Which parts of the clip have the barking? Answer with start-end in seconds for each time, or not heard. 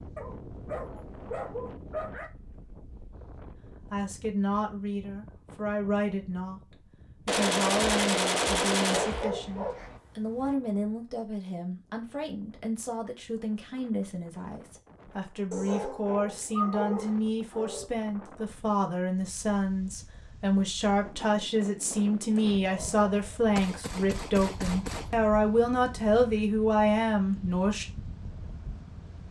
0.1-2.3, 8.9-10.6, 15.5-17.9, 22.2-23.4.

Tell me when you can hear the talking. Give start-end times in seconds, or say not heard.
3.9-27.9.